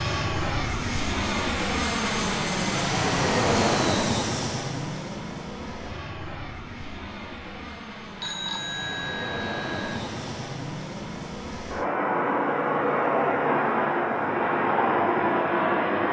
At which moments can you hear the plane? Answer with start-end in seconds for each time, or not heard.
0.0-16.0.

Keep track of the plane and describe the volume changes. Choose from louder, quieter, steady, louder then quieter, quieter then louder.
quieter then louder.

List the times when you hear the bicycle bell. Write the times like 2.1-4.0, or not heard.
8.2-10.0.